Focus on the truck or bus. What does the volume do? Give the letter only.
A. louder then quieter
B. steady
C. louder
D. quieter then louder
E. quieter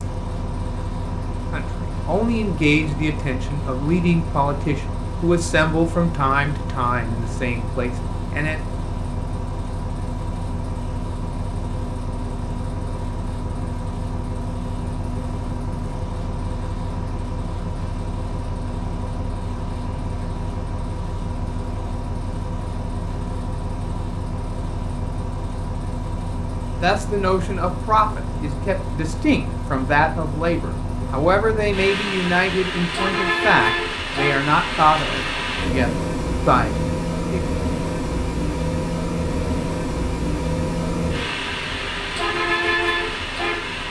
C.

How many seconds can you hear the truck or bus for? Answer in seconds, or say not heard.
44 s.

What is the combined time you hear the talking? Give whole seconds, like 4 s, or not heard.
18 s.